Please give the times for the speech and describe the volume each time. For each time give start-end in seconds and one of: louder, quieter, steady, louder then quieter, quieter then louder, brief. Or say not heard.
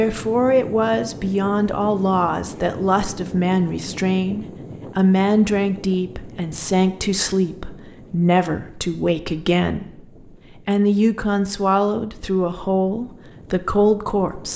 0.0-14.5 steady.